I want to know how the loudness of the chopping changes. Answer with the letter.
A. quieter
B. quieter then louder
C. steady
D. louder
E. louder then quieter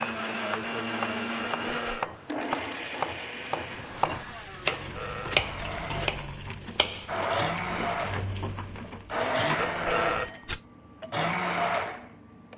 E.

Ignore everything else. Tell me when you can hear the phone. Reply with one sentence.
You can hear the phone from 1.6 to 2.2 s, from 4.7 to 5.7 s and from 9.6 to 10.6 s.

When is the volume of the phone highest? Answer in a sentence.
The loudest moment of the phone is at 10 seconds.